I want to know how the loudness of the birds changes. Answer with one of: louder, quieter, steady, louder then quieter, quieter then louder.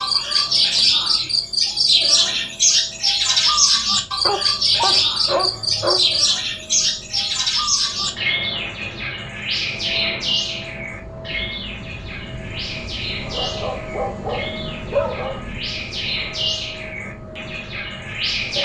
quieter.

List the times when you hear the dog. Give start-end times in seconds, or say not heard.
4.2-6.4, 13.2-15.5.